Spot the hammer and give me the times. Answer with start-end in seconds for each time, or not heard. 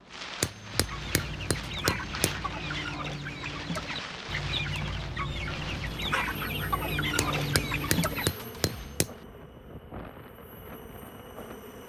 0.4-2.4, 7.2-9.2.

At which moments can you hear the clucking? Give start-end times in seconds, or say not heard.
0.7-8.3.